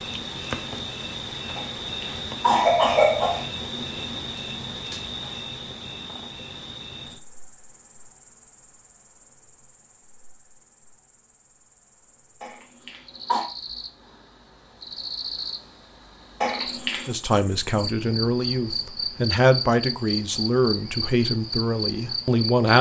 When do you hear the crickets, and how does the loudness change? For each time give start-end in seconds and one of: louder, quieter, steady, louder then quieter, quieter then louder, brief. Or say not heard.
0.0-22.7 quieter then louder.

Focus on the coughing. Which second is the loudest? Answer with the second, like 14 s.
3 s.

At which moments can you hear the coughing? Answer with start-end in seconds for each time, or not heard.
1.6-3.5, 12.4-13.4, 16.4-17.1.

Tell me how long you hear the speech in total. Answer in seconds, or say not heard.
6 s.